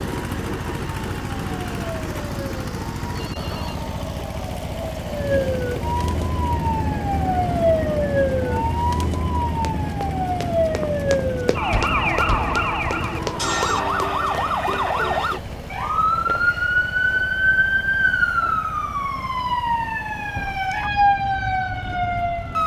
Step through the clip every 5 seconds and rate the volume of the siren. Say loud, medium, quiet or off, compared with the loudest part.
quiet, loud, loud, loud, loud.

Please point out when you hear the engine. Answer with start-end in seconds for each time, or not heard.
0.0-22.6.